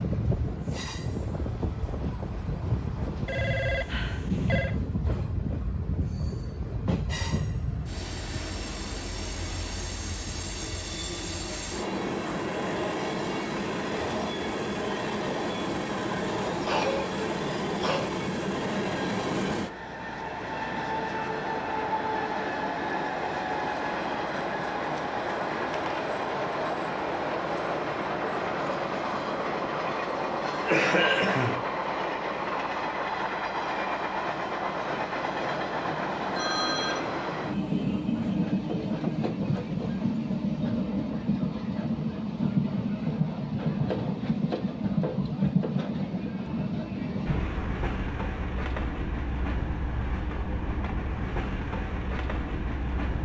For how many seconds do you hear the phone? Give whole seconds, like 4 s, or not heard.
2 s.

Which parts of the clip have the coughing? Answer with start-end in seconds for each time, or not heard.
16.6-18.1, 30.4-31.6.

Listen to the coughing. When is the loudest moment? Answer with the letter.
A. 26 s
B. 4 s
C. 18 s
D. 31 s
D.